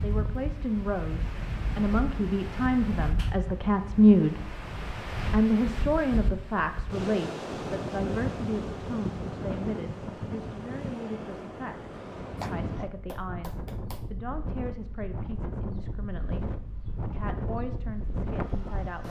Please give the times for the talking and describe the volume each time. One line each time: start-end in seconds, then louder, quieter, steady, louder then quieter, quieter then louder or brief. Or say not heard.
0.0-4.5 louder
5.3-19.0 quieter.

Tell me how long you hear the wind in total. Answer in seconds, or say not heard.
19 s.